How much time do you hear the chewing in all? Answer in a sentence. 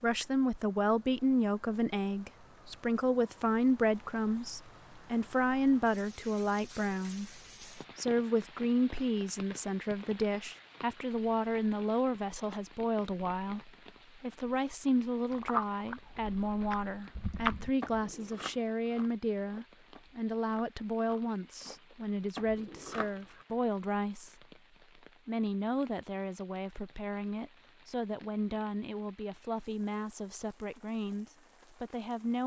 The chewing can be heard for 8 seconds in total.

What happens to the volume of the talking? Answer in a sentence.
The loudness of the talking goes down.